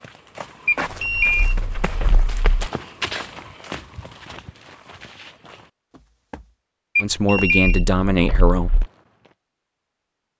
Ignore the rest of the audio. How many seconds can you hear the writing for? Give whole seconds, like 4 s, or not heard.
not heard.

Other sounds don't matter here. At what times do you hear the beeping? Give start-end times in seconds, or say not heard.
0.7-2.6, 7.0-8.8.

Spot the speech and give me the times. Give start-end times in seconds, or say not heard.
7.0-8.7.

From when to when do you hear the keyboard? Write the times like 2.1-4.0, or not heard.
not heard.